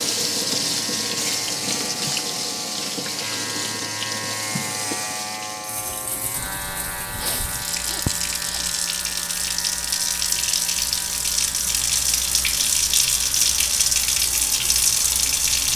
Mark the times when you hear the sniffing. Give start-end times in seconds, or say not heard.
7.2-8.7.